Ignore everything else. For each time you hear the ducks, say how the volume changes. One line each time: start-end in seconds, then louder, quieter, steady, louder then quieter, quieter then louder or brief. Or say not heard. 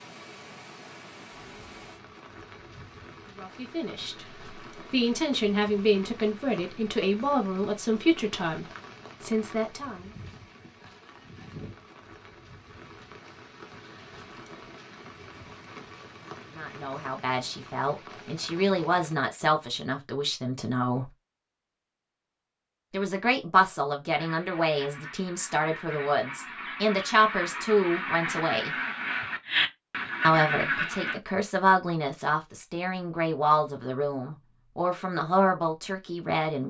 24.1-31.2 louder.